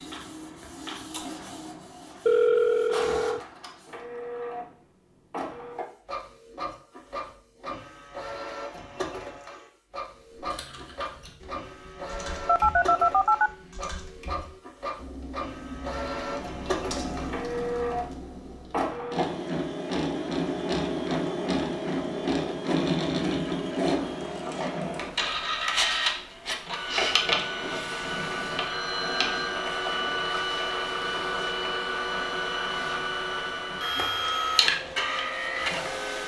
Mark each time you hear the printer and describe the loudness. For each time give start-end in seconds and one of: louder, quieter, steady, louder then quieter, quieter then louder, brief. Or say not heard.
0.0-36.2 louder.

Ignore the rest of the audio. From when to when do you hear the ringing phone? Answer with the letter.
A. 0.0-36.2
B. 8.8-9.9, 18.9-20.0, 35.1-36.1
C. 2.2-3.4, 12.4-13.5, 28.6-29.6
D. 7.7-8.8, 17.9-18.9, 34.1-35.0
C.